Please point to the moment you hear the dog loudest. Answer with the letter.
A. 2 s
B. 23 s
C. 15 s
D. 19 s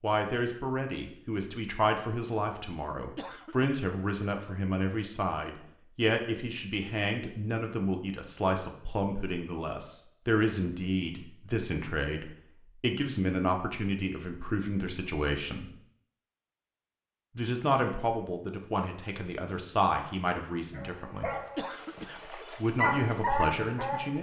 B.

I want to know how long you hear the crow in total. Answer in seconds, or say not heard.
not heard.